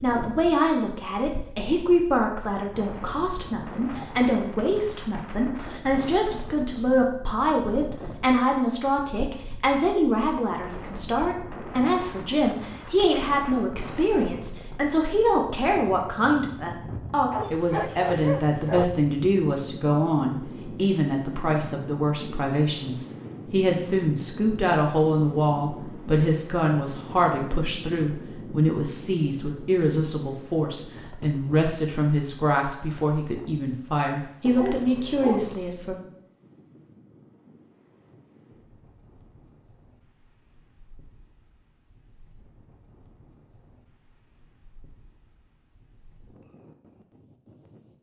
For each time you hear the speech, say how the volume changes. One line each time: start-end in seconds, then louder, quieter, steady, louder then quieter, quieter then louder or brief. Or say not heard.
0.0-36.0 steady.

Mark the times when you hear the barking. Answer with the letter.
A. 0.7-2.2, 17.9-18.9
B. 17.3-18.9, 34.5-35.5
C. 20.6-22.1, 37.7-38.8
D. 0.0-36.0
B.